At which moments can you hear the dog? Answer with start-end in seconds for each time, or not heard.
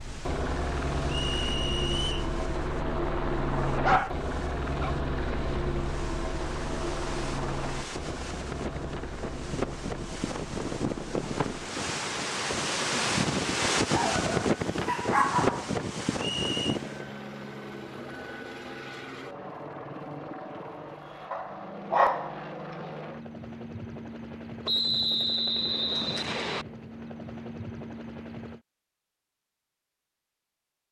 3.6-5.0, 13.9-15.7, 21.3-22.9.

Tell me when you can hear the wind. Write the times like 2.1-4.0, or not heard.
0.0-17.1.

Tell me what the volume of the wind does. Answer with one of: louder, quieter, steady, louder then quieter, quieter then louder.
louder.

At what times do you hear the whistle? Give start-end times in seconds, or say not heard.
1.1-2.3, 16.1-16.6, 24.6-26.6.